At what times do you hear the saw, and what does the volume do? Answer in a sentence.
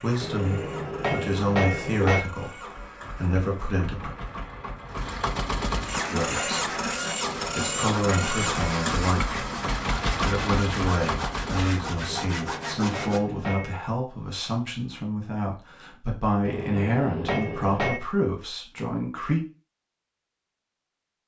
You can hear the saw from 6.0 to 13.2 s, at a steady volume.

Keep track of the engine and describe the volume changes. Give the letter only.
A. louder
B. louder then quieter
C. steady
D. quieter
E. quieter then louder
A.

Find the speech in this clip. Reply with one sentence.
You can hear the speech from 0.0 to 4.1 s, from 6.1 to 6.6 s, from 7.4 to 9.4 s and from 10.2 to 19.4 s.